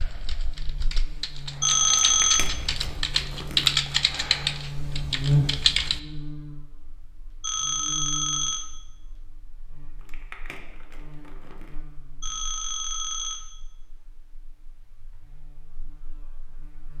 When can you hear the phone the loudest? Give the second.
2 s.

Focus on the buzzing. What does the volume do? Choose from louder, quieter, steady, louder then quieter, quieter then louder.
louder then quieter.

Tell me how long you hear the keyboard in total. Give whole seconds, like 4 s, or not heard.
6 s.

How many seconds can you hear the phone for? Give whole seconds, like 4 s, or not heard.
3 s.